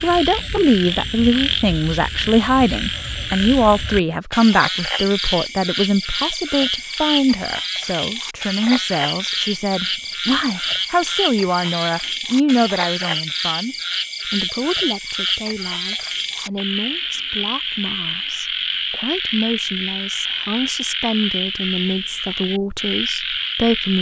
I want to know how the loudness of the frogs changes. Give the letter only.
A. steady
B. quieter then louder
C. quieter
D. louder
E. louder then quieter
A.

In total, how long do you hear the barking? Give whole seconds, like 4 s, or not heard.
not heard.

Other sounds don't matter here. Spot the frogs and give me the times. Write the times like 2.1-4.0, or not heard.
0.0-23.9.